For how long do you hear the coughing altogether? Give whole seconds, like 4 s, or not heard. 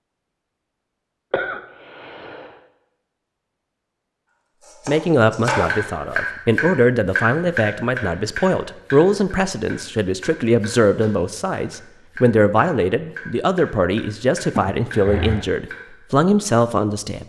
2 s.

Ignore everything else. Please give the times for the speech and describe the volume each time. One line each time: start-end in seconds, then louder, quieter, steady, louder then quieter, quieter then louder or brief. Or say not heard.
4.8-17.2 steady.